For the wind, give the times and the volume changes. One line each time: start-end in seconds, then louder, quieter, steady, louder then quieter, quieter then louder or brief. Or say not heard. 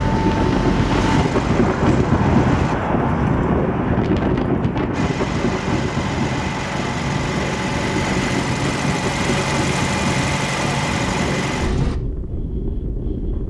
0.0-13.4 quieter.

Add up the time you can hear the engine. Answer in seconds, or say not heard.
10 s.